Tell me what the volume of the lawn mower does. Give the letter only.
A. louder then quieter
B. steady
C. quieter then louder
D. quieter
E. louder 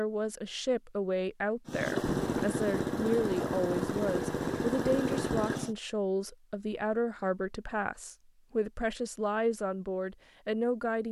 B.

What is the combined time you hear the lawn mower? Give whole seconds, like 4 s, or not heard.
4 s.